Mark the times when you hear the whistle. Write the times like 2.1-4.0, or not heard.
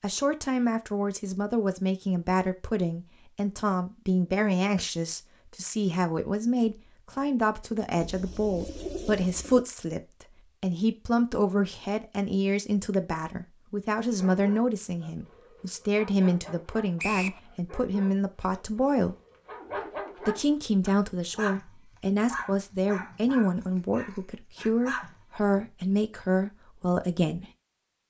16.9-17.4.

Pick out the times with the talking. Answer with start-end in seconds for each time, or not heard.
0.0-19.1, 20.2-27.4.